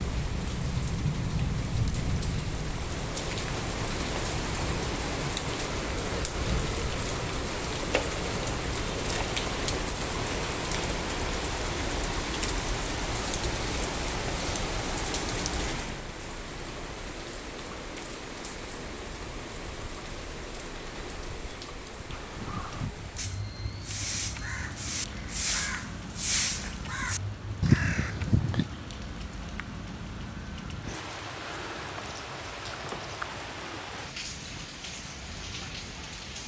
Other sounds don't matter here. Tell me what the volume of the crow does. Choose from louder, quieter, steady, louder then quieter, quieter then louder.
louder.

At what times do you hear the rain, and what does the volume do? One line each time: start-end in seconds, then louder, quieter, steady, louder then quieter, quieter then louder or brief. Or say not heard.
0.0-36.4 quieter.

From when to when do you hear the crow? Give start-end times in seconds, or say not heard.
22.1-28.6.